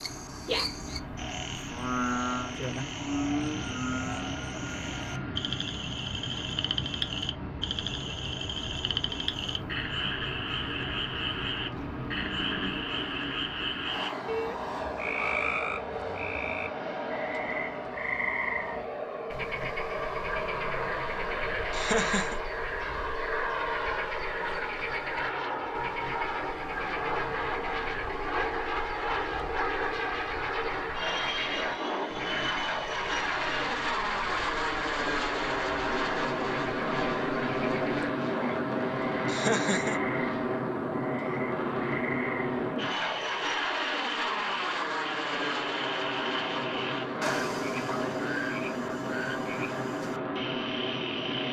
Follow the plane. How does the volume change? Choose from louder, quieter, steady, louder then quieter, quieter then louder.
louder.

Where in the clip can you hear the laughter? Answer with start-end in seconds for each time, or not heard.
21.7-22.4, 39.2-40.0.